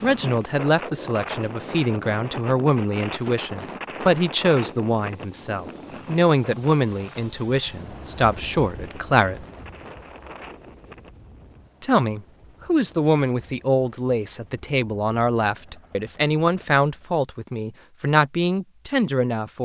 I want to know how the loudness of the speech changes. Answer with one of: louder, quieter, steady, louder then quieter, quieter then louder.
steady.